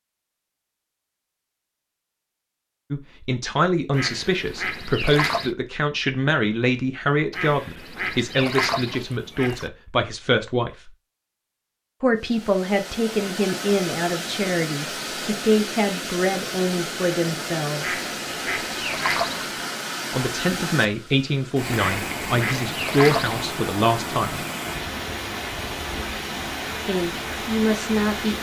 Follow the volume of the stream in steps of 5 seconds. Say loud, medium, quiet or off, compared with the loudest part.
off, off, loud, loud, loud, loud.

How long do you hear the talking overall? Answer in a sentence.
You can hear the talking for 20 seconds altogether.